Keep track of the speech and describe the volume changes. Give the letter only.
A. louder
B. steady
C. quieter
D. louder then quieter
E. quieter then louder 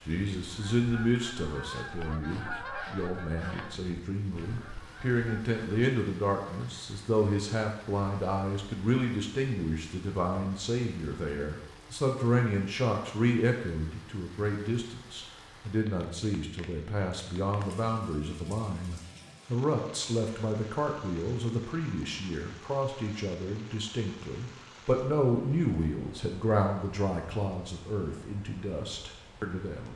B.